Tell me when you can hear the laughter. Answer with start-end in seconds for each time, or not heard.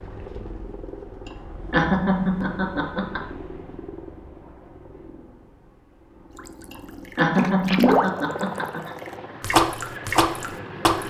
1.2-3.2, 6.7-8.9.